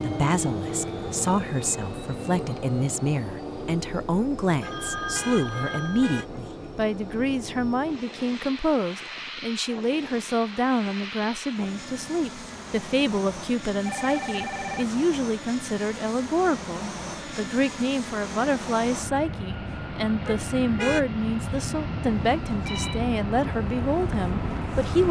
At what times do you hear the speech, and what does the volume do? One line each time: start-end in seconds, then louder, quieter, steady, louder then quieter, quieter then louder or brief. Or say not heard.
0.0-25.0 steady.